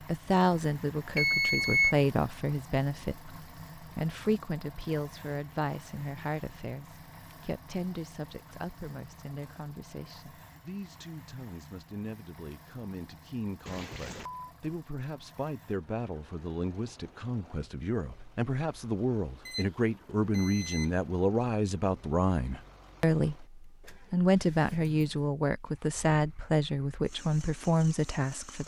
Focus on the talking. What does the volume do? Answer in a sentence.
The volume of the talking goes down, then up.